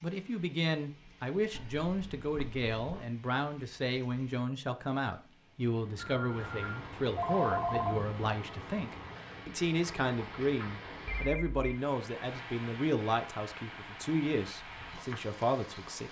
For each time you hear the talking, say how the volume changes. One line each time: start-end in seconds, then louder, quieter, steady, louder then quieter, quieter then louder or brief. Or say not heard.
0.0-16.0 steady.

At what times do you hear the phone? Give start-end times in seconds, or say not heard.
1.5-3.0, 6.0-8.0, 11.1-11.8.